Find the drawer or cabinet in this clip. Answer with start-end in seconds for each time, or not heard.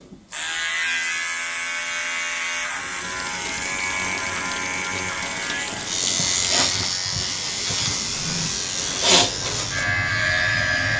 8.0-8.5.